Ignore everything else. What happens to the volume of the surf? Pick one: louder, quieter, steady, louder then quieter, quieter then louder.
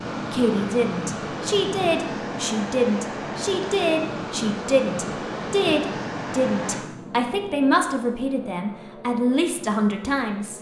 steady.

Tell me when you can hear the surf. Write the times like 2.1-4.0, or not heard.
0.0-6.8.